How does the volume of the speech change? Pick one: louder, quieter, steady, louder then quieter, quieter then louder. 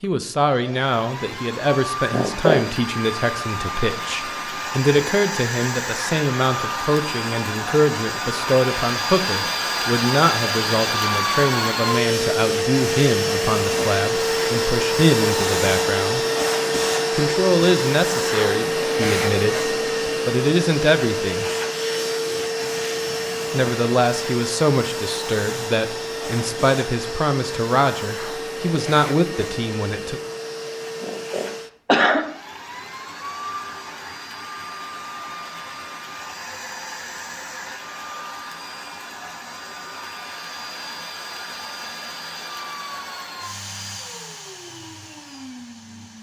steady.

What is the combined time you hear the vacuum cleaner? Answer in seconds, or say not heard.
46 s.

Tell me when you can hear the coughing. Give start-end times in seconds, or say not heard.
2.1-2.6, 31.0-32.2.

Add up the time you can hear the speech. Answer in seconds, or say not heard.
27 s.